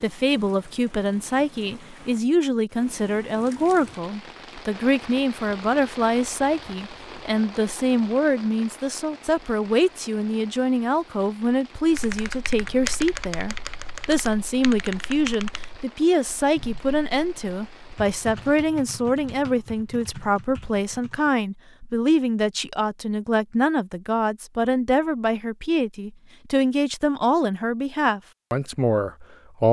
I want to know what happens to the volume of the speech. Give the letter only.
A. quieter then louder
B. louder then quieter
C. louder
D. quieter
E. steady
E.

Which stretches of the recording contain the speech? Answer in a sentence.
The speech can be heard from 0.0 to 29.6 s.